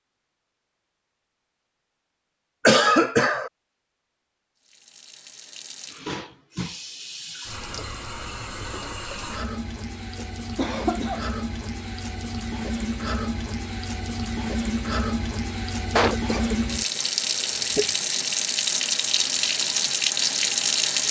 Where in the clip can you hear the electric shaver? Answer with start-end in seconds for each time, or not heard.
not heard.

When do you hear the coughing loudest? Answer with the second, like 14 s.
3 s.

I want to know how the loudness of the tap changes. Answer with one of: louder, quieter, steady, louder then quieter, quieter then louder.
louder.